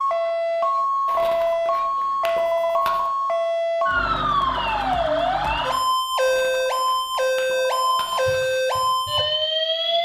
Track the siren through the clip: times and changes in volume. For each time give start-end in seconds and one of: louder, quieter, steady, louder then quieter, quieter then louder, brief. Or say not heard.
0.0-10.0 steady.